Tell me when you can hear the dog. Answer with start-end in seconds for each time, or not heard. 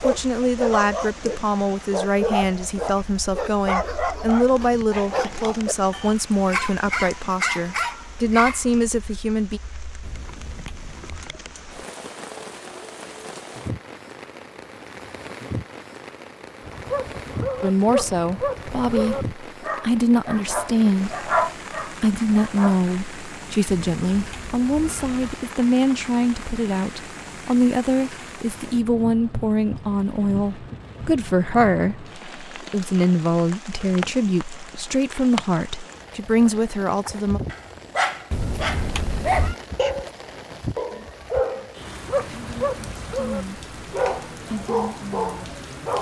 0.0-8.8, 16.6-22.8, 37.0-45.9.